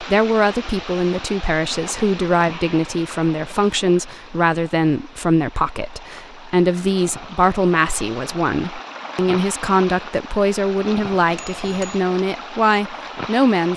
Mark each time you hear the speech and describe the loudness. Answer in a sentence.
The speech can be heard from 0.0 to 13.7 s, at a steady volume.